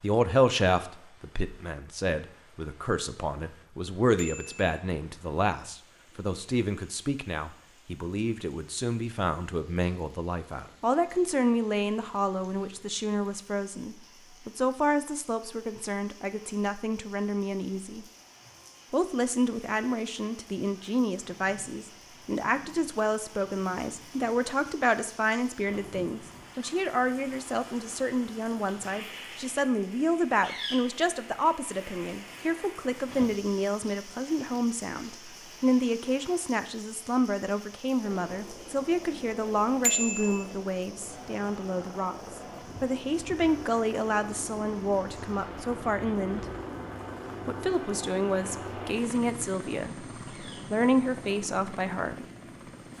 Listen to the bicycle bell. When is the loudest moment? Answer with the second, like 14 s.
40 s.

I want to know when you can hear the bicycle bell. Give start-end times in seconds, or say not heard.
4.2-4.8, 39.8-40.5.